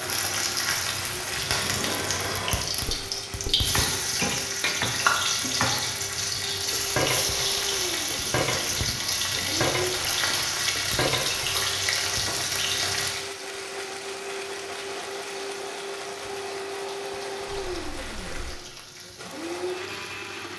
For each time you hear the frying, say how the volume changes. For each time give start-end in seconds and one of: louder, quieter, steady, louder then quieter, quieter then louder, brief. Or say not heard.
0.0-20.5 quieter.